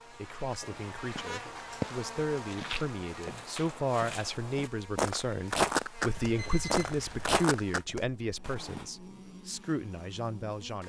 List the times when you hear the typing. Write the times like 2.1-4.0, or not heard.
not heard.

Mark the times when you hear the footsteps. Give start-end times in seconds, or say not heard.
0.6-8.8.